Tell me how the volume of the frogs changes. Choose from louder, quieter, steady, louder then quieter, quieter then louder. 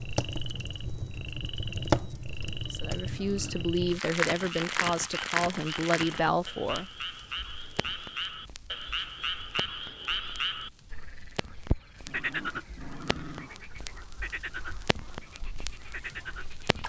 louder then quieter.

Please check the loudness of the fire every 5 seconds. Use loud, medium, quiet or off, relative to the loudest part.
loud, medium, quiet, quiet.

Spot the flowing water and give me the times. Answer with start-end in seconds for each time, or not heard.
not heard.